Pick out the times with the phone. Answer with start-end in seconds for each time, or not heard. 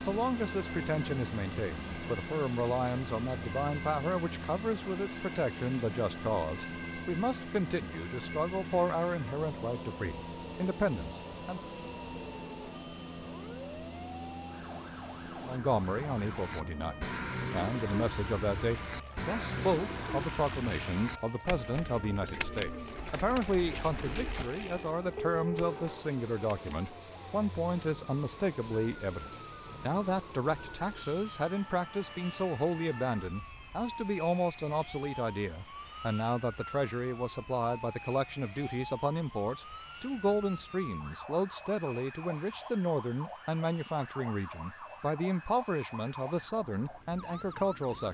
25.1-25.8.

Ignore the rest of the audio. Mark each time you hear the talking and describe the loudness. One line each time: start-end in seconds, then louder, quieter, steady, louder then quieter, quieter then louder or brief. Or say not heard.
0.1-11.6 steady
15.4-48.0 steady.